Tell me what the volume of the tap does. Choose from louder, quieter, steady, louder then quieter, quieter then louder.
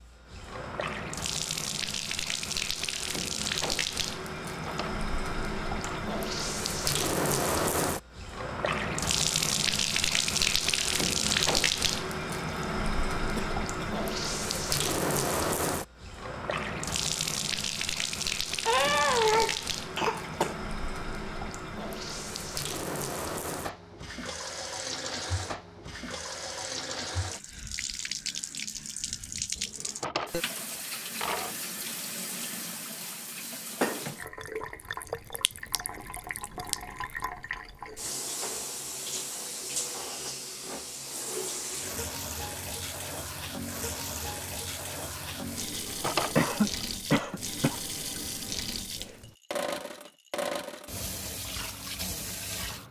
quieter.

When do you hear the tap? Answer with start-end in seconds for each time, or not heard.
0.0-52.8.